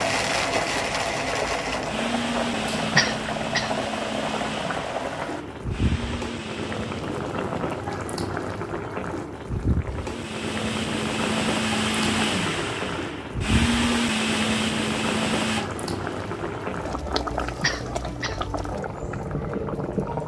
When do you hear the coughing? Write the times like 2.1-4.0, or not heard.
3.0-3.9, 17.6-18.6.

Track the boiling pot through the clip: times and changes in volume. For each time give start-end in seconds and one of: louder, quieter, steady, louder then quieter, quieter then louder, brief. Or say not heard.
0.0-20.2 steady.